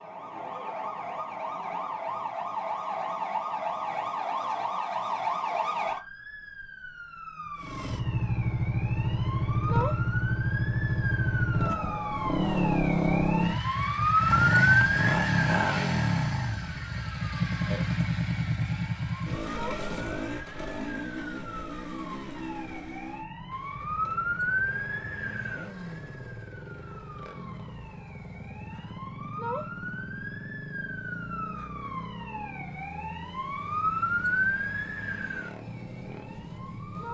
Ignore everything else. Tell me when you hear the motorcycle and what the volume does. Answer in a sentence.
You can hear the motorcycle from 7.5 to 37.0 s, getting quieter.